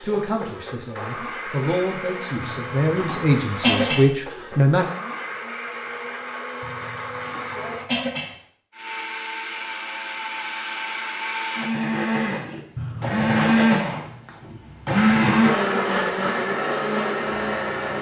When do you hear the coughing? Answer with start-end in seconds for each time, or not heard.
2.4-4.1, 6.6-8.3, 12.8-13.7.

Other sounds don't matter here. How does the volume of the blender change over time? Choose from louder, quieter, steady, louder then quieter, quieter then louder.
louder.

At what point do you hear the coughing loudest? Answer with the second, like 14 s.
4 s.